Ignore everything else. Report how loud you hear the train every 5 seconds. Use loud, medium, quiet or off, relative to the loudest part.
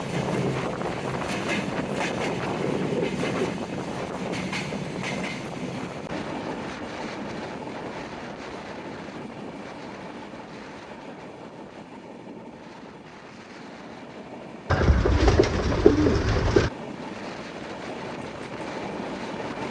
loud, medium, quiet, medium.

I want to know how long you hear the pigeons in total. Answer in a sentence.
The pigeons can be heard for 2 seconds in total.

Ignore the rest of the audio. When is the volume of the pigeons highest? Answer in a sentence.
The loudest moment of the pigeons is at 16 seconds.